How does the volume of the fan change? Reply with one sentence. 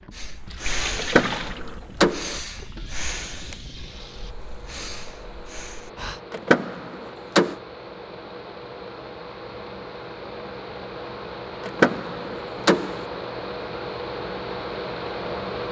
The loudness of the fan goes up.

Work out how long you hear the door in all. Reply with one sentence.
The door can be heard for 4 seconds in total.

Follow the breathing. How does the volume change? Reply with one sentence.
The loudness of the breathing goes down, then up.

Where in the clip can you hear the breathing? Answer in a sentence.
You can hear the breathing from 0.1 to 6.2 s.